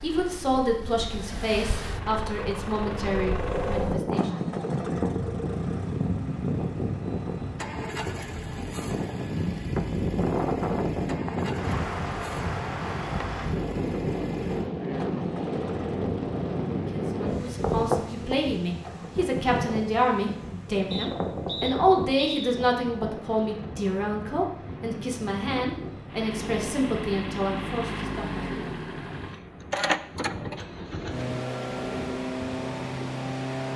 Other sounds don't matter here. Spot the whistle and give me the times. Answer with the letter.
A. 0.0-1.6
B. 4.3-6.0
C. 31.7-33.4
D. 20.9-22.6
D.